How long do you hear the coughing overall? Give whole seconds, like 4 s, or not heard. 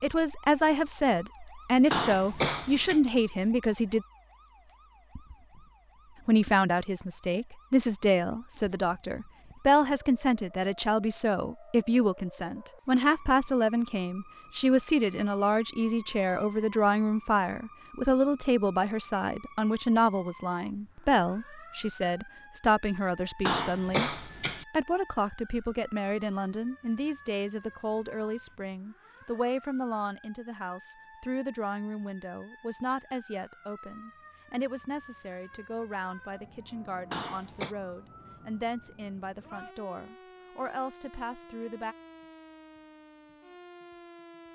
3 s.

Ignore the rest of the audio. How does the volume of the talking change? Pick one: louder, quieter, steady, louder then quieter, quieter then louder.
quieter.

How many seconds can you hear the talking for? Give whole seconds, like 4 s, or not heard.
40 s.